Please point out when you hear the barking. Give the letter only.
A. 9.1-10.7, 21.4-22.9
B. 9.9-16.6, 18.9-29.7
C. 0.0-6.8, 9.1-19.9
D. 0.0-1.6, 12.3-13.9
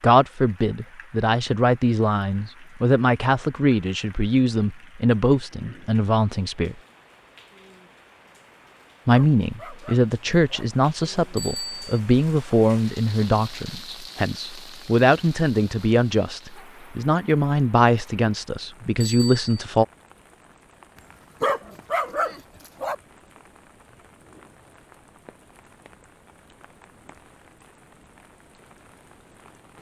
A.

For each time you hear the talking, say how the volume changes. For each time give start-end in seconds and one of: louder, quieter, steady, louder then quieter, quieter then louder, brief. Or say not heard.
0.0-6.8 steady
9.1-19.9 steady.